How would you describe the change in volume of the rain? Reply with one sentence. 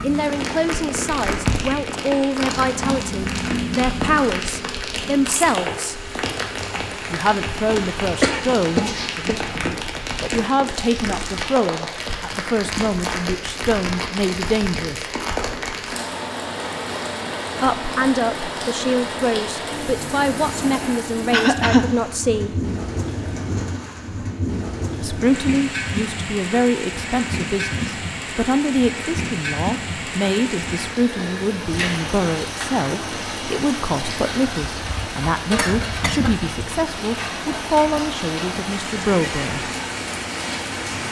The volume of the rain stays about the same.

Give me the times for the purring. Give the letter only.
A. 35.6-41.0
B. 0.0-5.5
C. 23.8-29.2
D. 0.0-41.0
B.